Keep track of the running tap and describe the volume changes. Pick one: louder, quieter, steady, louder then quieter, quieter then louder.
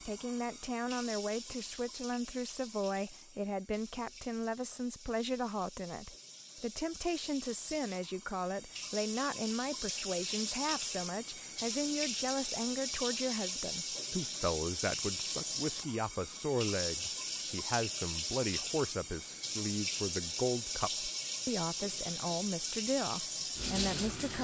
louder.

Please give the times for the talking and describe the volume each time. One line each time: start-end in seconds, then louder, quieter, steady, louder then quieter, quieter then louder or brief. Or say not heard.
0.0-24.3 steady.